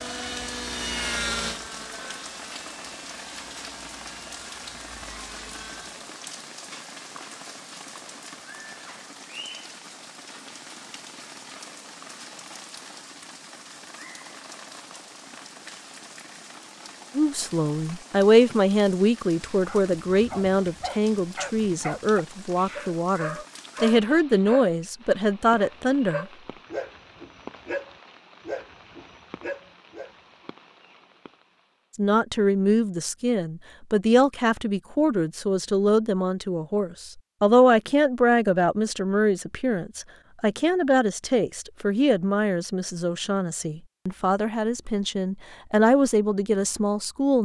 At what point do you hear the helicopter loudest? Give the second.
1 s.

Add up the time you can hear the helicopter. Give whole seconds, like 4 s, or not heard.
6 s.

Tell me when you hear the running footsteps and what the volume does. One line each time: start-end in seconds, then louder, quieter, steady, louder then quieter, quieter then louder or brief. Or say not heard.
not heard.